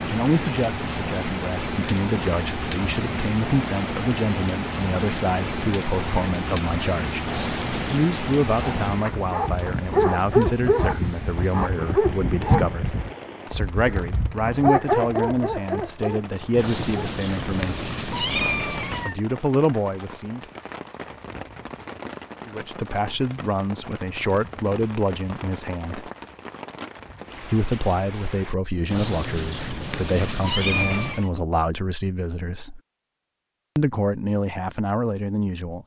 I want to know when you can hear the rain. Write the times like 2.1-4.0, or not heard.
0.0-29.0.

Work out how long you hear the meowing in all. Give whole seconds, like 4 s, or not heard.
6 s.